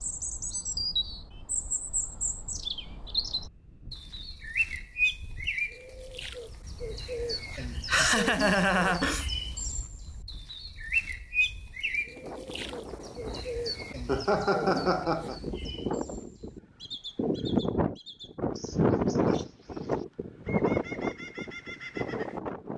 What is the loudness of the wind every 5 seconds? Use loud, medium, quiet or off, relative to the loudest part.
quiet, quiet, quiet, loud, loud.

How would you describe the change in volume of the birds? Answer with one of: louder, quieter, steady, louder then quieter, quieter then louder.
quieter.